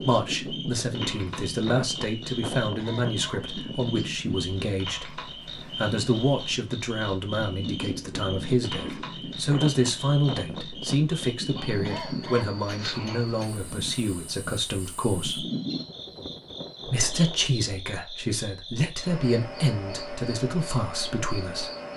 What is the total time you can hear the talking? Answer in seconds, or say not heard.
20 s.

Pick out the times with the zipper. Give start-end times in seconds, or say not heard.
not heard.